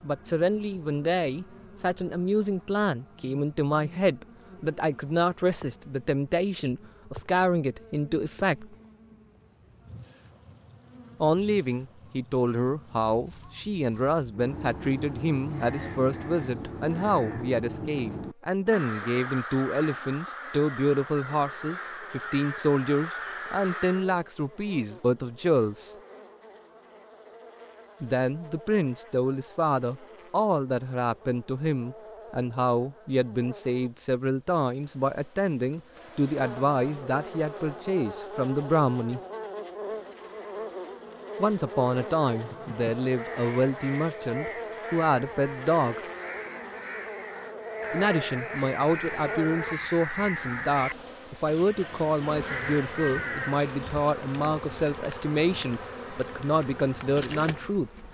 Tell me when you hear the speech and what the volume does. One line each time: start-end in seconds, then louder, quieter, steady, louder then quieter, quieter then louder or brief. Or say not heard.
0.0-8.8 steady
11.2-25.9 steady
28.0-39.2 steady
41.4-46.0 quieter then louder
47.9-57.9 steady.